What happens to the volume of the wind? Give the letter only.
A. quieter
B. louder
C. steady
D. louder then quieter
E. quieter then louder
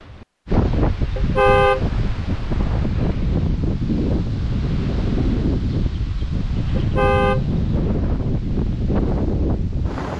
C.